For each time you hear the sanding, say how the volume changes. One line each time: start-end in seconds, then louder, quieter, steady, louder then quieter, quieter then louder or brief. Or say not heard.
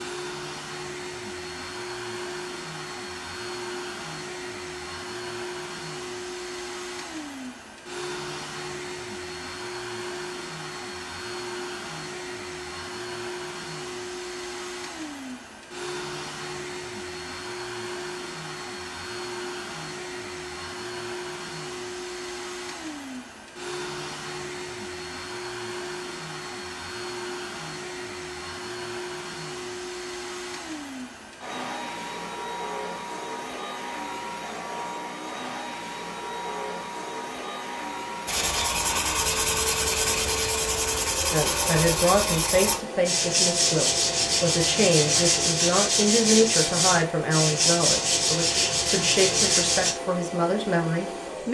38.2-50.0 steady.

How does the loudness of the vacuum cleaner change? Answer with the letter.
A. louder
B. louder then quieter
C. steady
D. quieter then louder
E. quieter
C.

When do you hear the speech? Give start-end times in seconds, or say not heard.
41.3-51.5.